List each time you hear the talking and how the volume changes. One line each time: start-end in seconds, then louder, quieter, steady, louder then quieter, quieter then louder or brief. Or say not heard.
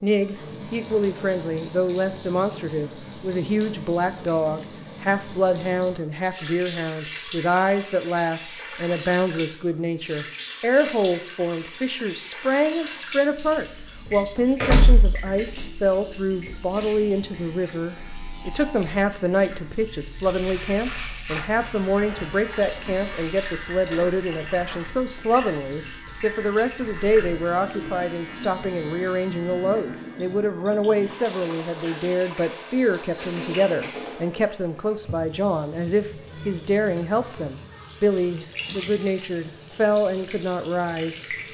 0.0-41.2 steady.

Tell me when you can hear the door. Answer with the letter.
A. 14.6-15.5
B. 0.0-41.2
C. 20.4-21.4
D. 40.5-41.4
A.